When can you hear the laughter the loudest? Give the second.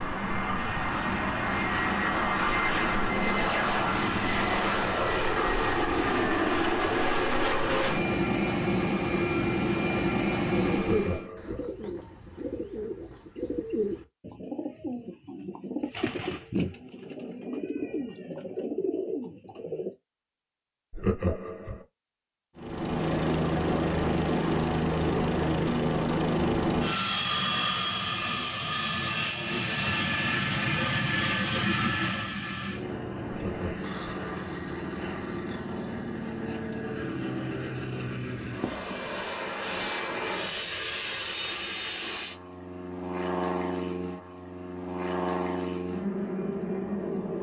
21 s.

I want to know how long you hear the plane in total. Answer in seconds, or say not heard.
36 s.